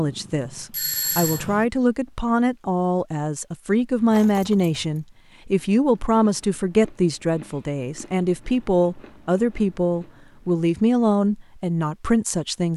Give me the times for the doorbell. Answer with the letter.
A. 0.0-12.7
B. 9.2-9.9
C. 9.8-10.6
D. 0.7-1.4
D.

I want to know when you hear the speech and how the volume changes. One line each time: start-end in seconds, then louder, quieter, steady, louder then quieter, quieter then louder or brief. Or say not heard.
0.0-12.7 steady.